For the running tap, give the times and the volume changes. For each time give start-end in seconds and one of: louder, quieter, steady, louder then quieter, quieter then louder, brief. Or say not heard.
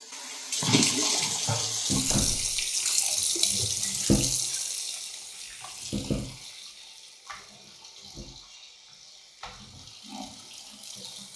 0.0-11.3 quieter.